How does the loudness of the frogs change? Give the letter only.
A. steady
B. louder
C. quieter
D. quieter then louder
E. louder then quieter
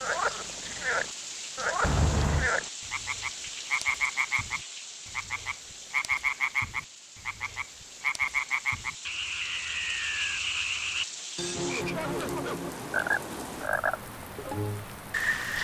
A.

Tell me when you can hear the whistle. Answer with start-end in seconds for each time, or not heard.
9.4-10.4.